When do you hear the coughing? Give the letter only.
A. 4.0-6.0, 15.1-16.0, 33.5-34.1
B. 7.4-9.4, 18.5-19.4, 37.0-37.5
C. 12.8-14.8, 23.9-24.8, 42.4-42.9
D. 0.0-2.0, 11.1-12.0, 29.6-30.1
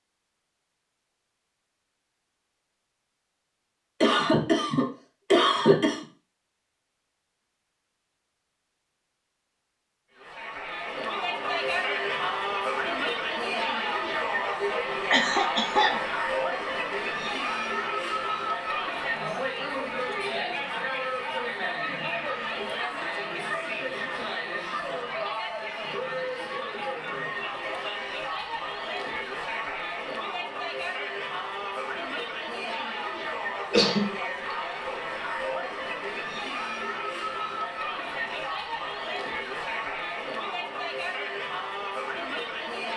A.